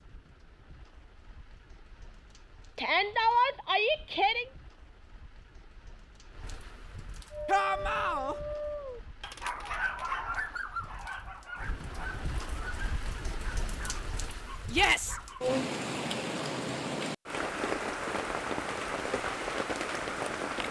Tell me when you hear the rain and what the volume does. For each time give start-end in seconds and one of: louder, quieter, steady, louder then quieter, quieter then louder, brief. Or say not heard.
0.0-20.6 louder.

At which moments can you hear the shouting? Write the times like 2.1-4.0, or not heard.
2.8-4.5, 7.5-8.3, 14.7-15.2.